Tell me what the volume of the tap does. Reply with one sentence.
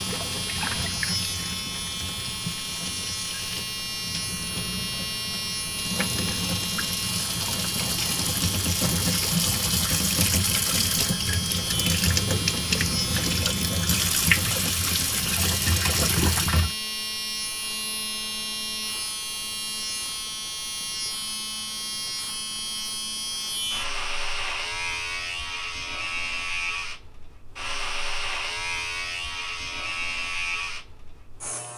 The volume of the tap goes up.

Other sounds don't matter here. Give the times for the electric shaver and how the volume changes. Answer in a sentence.
The electric shaver can be heard from 0.0 to 31.7 s, at a steady volume.